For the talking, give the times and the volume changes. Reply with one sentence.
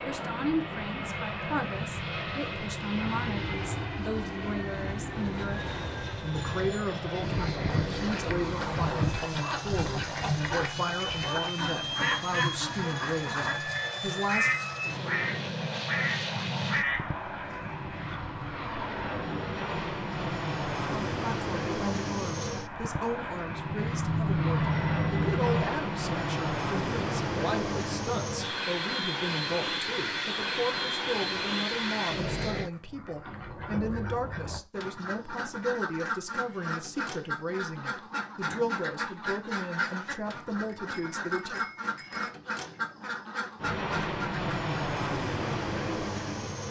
You can hear the talking from 0.1 to 14.5 s, at a steady volume; and from 20.9 to 41.6 s, at a steady volume.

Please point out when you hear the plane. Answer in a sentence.
The plane can be heard from 0.0 to 32.7 s and from 43.5 to 46.6 s.